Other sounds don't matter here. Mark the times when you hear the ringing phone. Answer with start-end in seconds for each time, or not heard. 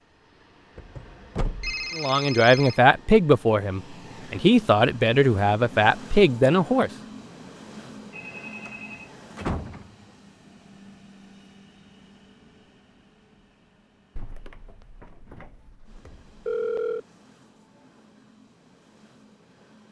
1.6-2.8, 8.1-9.1, 16.4-17.0.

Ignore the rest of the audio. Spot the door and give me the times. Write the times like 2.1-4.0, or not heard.
0.8-1.9, 8.7-9.8, 14.2-16.4.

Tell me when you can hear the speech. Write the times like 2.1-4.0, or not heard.
1.9-6.9.